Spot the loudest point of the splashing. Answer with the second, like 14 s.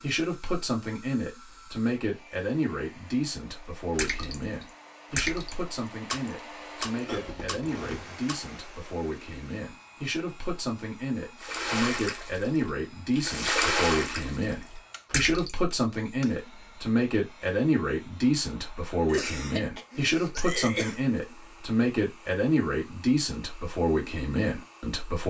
14 s.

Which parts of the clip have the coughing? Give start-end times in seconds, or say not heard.
7.0-8.1, 19.1-21.0.